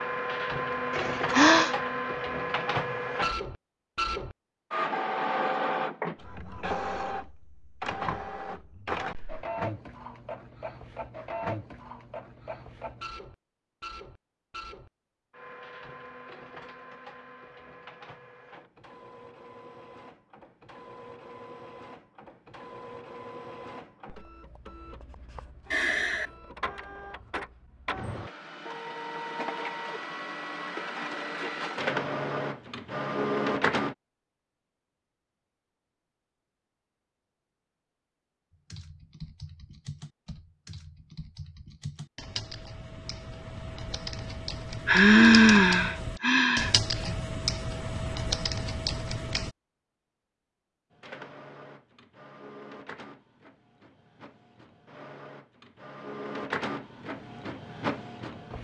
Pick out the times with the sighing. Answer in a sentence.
The sighing can be heard from 0.9 to 1.8 s, from 25.7 to 26.3 s and from 44.9 to 47.1 s.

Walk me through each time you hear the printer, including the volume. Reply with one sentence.
You can hear the printer from 0.0 to 34.0 s, getting quieter then louder; and from 50.9 to 58.5 s, getting louder.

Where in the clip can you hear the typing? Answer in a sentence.
You can hear the typing from 38.5 to 49.5 s.